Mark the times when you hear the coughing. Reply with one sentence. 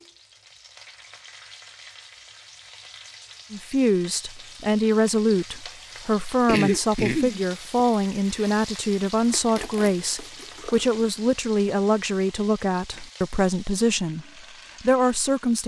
The coughing can be heard from 6.5 to 7.8 s.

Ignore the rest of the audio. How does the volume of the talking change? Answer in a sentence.
The loudness of the talking stays about the same.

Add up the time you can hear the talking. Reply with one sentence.
The talking can be heard for 12 seconds in total.